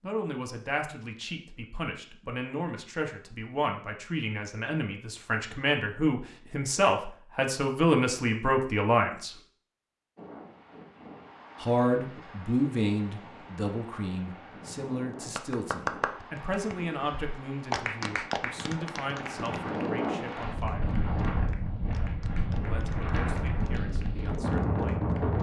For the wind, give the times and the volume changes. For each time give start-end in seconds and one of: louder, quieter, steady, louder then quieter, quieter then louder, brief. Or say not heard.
10.2-25.3 louder.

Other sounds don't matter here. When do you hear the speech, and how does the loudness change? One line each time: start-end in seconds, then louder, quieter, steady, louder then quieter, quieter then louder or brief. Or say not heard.
0.0-9.3 louder
11.6-21.0 quieter
22.6-25.1 brief.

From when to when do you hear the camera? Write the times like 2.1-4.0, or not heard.
not heard.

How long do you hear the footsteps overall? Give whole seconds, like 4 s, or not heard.
not heard.